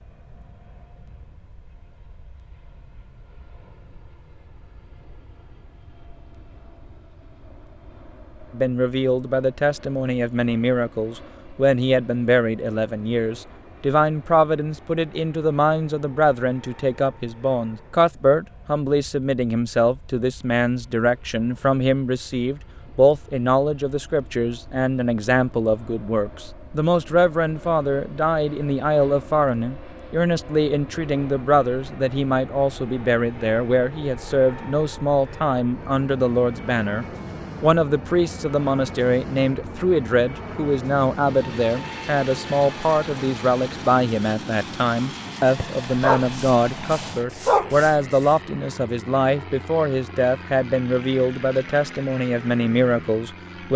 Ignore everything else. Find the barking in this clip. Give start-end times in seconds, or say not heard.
45.5-48.4.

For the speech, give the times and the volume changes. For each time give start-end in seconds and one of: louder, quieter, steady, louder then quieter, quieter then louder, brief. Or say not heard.
8.5-53.7 steady.